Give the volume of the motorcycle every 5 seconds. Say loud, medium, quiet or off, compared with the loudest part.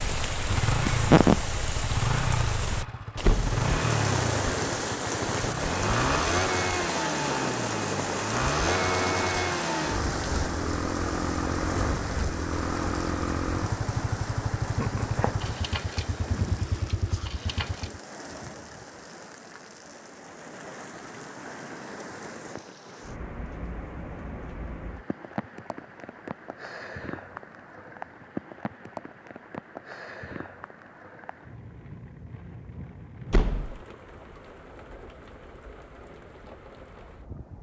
loud, loud, loud, medium, off, off, off, off.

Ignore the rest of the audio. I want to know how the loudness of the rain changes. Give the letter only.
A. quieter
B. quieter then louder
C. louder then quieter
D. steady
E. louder
A.